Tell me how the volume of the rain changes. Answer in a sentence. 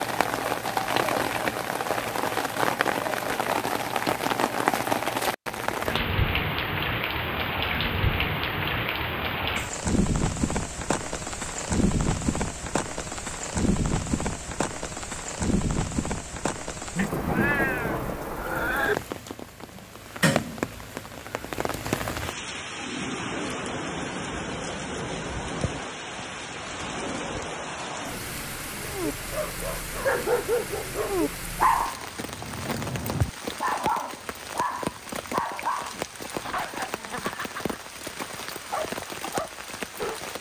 The volume of the rain goes down.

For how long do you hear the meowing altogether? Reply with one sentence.
You can hear the meowing for 2 seconds altogether.